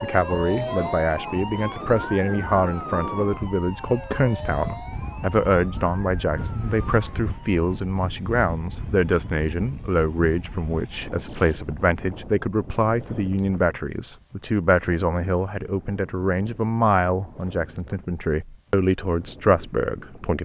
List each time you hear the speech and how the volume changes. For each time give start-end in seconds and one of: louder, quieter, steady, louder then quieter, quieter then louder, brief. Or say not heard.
0.0-20.4 steady.